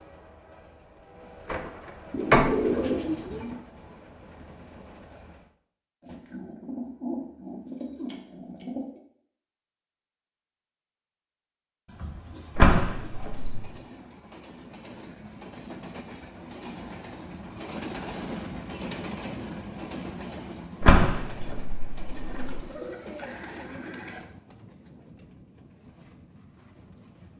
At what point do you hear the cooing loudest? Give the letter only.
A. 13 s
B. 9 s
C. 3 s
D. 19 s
C.